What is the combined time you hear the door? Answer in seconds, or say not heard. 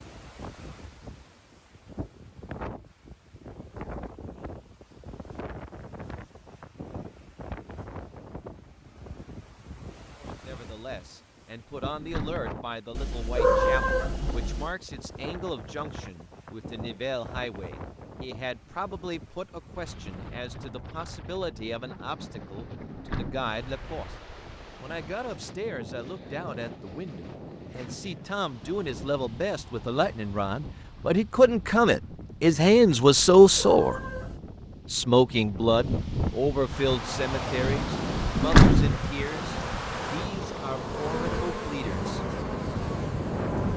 2 s.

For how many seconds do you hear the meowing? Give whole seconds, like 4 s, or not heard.
3 s.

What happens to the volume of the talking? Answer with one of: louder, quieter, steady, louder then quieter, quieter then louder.
louder then quieter.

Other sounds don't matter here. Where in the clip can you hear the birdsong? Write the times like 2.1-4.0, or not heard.
not heard.